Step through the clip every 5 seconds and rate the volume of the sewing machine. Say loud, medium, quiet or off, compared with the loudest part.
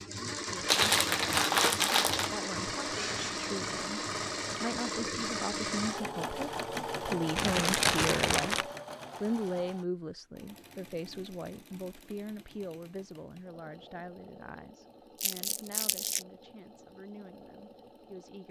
loud, loud, quiet, quiet.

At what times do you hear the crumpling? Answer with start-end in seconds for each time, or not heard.
0.7-2.3, 7.3-8.7, 15.2-16.2.